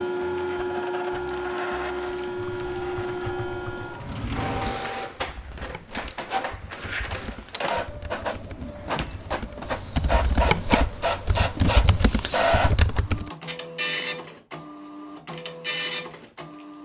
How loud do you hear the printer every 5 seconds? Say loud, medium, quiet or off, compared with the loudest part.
loud, medium, loud, loud.